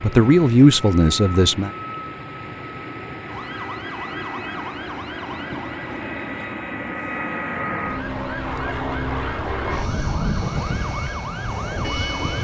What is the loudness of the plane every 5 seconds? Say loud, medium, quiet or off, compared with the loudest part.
medium, loud, loud.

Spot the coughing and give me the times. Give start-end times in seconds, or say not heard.
not heard.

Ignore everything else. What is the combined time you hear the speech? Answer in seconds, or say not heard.
2 s.